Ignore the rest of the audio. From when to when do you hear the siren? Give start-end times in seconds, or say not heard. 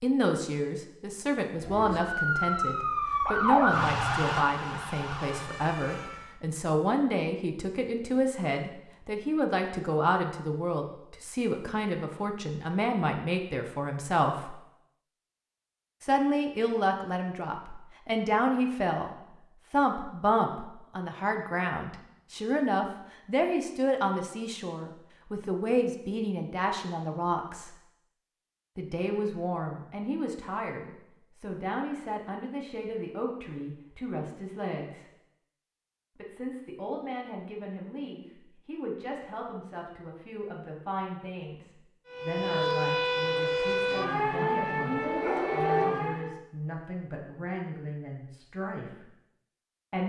1.6-6.3, 42.0-46.4.